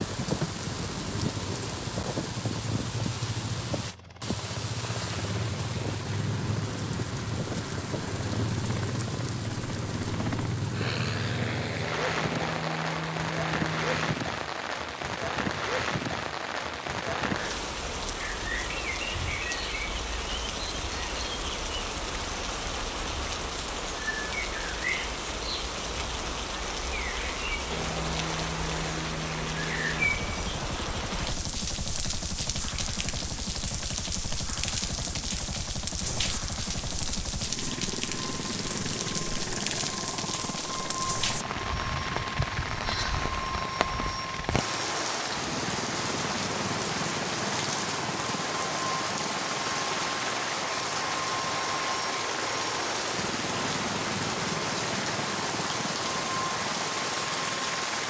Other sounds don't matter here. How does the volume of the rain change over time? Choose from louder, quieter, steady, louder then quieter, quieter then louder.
steady.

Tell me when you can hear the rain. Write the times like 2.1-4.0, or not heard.
0.0-58.0.